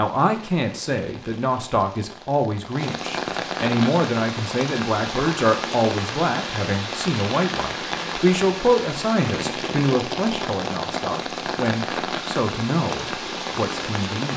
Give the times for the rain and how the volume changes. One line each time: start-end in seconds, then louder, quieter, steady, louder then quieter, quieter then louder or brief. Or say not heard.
0.0-14.3 louder.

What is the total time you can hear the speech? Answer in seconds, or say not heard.
14 s.